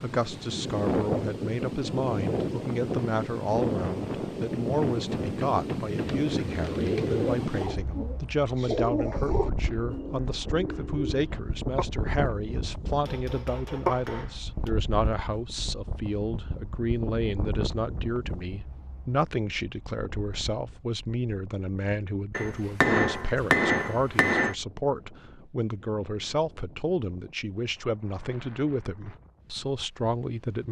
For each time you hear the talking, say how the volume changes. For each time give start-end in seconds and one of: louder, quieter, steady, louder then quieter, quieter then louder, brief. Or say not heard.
0.0-30.6 steady.